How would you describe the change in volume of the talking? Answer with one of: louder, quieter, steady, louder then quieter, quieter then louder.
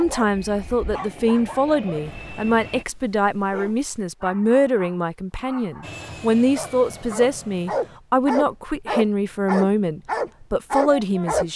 steady.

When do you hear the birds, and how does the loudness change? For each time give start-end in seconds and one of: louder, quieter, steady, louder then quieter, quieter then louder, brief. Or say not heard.
not heard.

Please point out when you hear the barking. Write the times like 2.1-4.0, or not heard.
0.0-11.4.